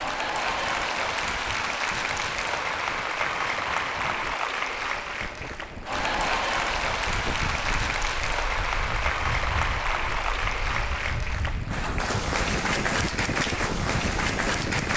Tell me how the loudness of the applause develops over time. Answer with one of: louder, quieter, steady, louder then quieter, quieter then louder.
steady.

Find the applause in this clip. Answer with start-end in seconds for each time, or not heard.
0.0-14.9.